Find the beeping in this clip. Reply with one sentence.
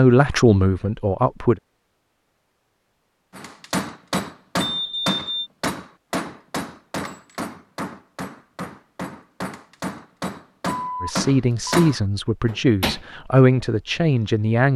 You can hear the beeping from 4.6 to 5.5 s and from 10.7 to 11.8 s.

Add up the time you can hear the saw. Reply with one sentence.
The saw can't be heard in this clip.